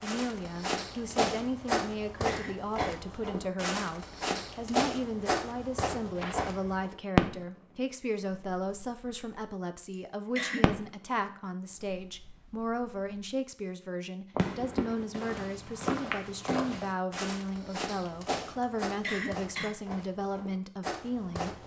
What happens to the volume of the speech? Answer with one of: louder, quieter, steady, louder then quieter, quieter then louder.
steady.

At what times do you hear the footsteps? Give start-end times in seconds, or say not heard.
0.0-7.0, 14.8-21.6.